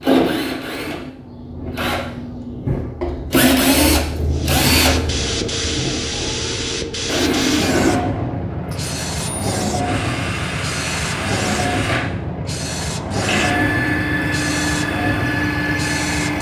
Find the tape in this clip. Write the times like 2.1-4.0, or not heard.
not heard.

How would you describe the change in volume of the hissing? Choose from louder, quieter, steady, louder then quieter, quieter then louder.
steady.